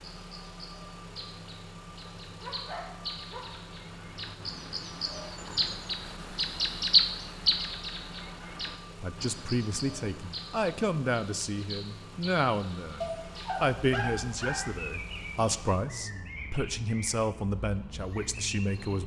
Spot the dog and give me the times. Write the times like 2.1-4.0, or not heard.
2.2-3.7, 13.0-14.7.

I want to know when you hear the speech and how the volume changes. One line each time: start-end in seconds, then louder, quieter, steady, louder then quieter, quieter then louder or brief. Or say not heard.
8.9-19.0 steady.